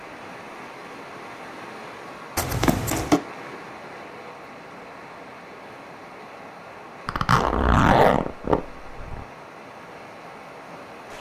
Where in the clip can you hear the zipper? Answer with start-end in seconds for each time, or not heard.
2.4-3.2, 7.0-9.2.